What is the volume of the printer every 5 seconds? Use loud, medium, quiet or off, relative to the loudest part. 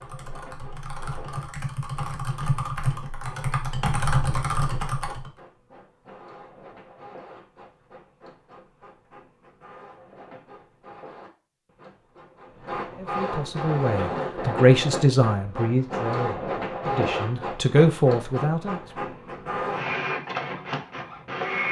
quiet, quiet, loud, loud, loud.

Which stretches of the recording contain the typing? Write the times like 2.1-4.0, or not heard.
0.0-5.3.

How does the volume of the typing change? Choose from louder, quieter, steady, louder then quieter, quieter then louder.
louder.